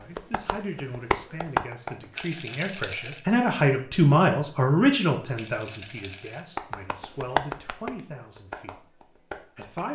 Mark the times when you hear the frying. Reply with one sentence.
The frying can't be heard in this clip.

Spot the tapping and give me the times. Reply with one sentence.
You can hear the tapping from 0.1 to 2.2 s and from 6.5 to 9.9 s.